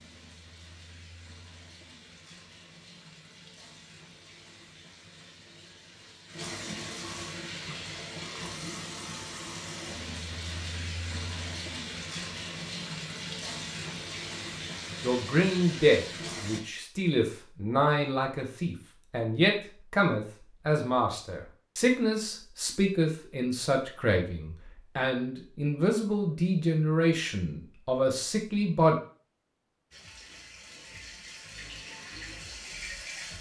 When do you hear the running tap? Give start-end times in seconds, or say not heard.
0.0-16.6, 29.9-33.3.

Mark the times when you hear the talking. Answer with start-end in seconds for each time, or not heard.
15.0-28.9.